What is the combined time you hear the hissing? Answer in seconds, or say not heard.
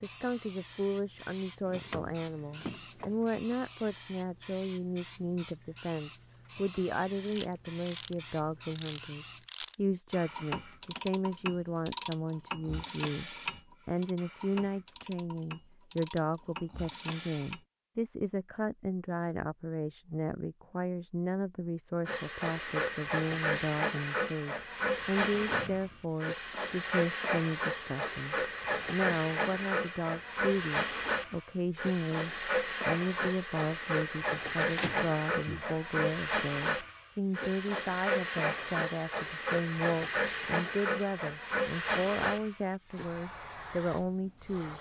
32 s.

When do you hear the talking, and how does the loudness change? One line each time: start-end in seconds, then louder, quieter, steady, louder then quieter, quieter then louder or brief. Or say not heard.
0.0-44.7 steady.